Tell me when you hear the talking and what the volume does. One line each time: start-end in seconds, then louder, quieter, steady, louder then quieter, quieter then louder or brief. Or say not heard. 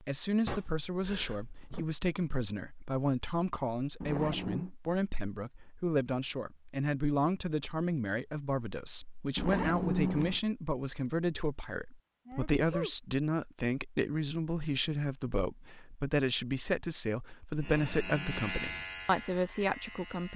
0.0-20.3 steady.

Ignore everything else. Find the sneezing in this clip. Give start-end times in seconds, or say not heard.
0.5-1.9, 12.2-12.9.